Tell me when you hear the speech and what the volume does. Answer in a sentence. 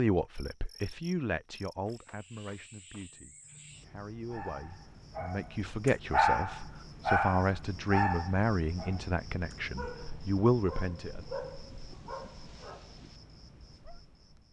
You can hear the speech from 0.0 to 11.2 s, getting quieter then louder.